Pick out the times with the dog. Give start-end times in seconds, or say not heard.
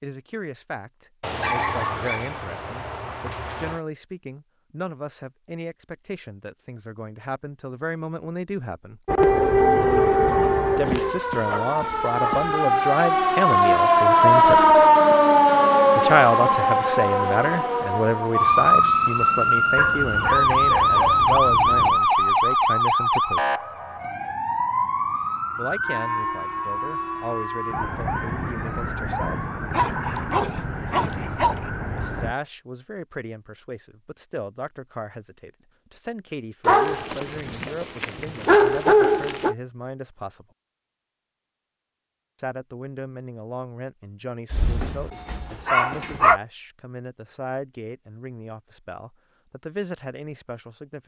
1.2-3.8, 10.8-12.6, 19.8-22.0, 29.7-31.6, 36.6-39.5, 44.5-46.4.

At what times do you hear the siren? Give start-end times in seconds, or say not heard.
9.1-32.4.